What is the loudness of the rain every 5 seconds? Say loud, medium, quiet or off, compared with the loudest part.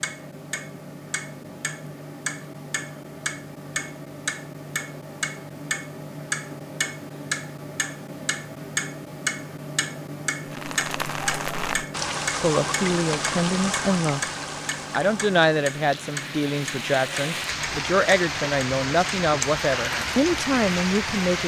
off, off, loud, loud, loud.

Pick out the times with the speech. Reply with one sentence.
You can hear the speech from 12.4 to 14.2 s and from 14.9 to 21.4 s.